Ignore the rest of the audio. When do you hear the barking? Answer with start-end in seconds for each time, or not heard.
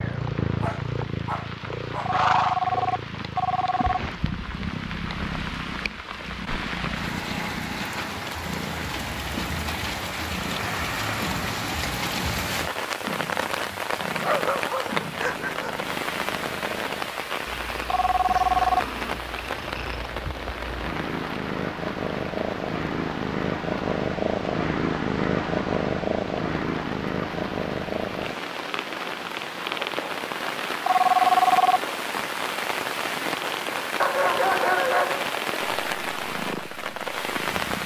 0.6-2.2, 14.2-15.8, 34.0-35.3.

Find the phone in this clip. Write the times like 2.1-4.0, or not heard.
2.0-4.0, 17.9-18.8, 30.9-31.8.